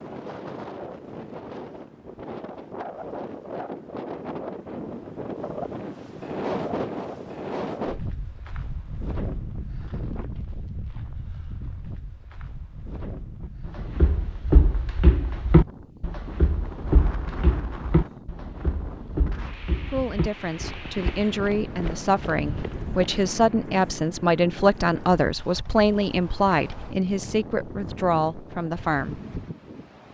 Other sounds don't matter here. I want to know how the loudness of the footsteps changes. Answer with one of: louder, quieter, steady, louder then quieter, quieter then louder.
quieter.